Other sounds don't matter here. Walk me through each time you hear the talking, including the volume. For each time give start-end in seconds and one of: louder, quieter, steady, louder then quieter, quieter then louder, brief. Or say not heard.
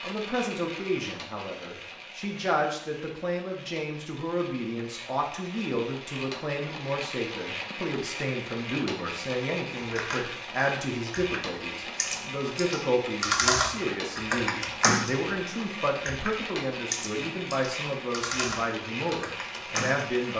0.0-20.3 steady.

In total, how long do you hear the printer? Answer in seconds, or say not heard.
20 s.